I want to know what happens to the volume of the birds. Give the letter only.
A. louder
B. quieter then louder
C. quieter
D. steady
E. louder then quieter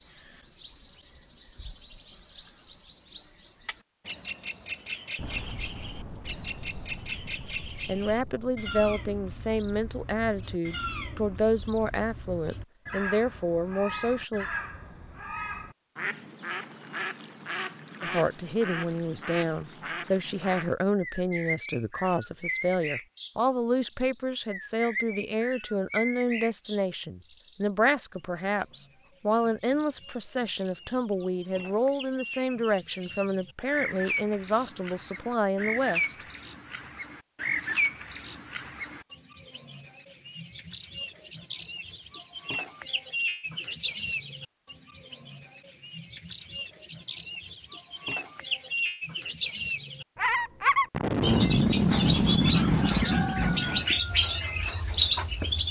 A.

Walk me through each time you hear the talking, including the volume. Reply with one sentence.
You can hear the talking from 7.8 to 14.4 s, at a steady volume; and from 18.0 to 36.1 s, at a steady volume.